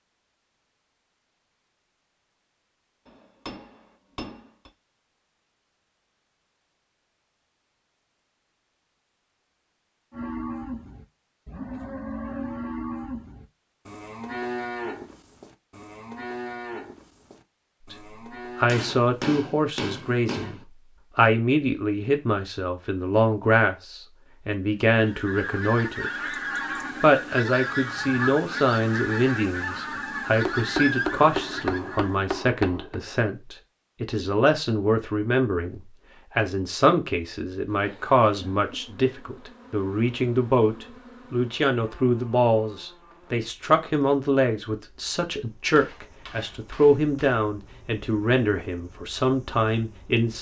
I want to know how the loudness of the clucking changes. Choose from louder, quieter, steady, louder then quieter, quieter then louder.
steady.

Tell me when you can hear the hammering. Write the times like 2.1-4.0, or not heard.
3.0-4.7, 18.6-20.6, 30.4-33.0, 45.8-47.4.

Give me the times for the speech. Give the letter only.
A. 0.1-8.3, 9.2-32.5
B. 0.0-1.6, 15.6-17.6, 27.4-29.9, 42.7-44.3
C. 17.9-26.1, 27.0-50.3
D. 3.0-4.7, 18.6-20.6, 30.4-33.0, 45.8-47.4
C.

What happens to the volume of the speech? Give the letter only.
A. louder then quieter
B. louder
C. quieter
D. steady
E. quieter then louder
D.